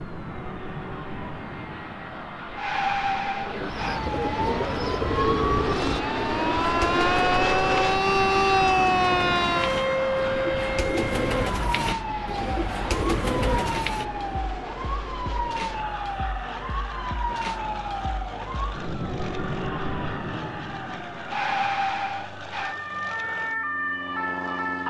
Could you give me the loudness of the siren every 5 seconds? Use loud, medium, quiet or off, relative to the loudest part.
medium, loud, medium, medium, medium.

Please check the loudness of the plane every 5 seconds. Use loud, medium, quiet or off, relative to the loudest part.
medium, loud, medium, medium, medium.